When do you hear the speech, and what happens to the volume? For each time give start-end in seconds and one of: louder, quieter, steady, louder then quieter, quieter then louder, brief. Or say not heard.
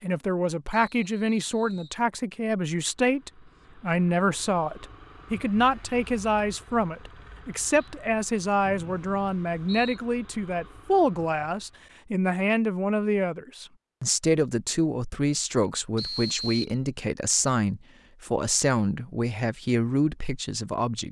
0.0-21.0 steady.